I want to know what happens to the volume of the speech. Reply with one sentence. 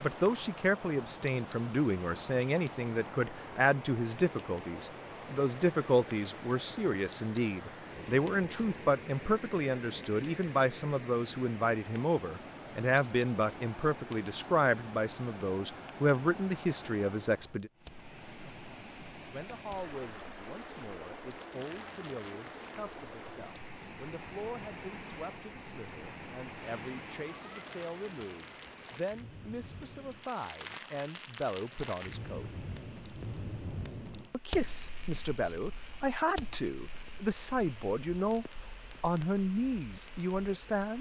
The loudness of the speech goes down, then up.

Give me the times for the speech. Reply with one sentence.
The speech can be heard from 0.0 to 17.7 s, from 19.3 to 32.5 s and from 34.3 to 40.9 s.